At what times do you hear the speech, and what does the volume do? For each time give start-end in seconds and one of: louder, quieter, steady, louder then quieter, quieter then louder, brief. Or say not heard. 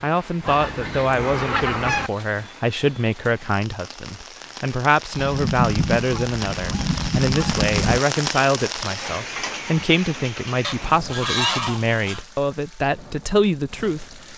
0.0-14.2 steady.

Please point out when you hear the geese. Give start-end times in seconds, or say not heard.
0.4-2.1, 5.2-8.0, 10.6-12.2.